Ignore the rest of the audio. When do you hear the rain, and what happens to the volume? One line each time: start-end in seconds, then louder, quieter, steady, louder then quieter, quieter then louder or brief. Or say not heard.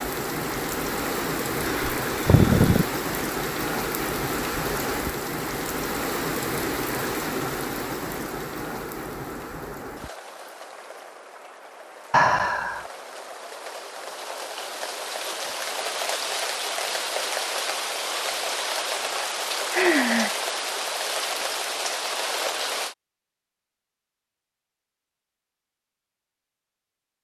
0.0-22.9 quieter then louder.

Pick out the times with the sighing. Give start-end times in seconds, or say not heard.
1.6-2.9, 12.1-12.8, 19.7-20.4.